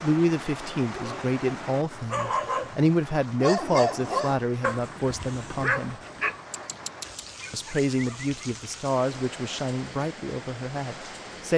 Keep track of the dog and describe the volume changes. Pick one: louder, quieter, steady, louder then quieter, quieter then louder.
quieter.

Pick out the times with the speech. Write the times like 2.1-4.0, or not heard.
0.0-6.0, 7.5-11.5.